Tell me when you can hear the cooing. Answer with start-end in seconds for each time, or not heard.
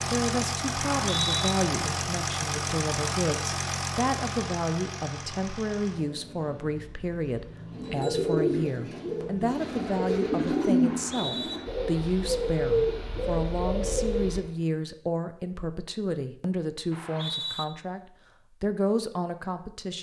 7.7-14.4.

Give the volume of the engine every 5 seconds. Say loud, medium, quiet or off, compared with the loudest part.
loud, quiet, quiet, off.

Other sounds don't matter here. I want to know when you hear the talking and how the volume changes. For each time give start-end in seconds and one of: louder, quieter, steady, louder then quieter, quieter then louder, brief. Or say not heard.
0.1-19.9 steady.